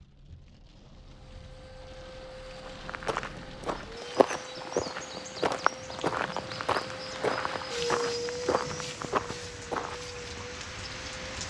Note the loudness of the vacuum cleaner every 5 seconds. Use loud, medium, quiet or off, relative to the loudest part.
medium, loud, medium.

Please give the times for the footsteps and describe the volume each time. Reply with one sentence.
You can hear the footsteps from 2.6 to 10.4 s, at a steady volume.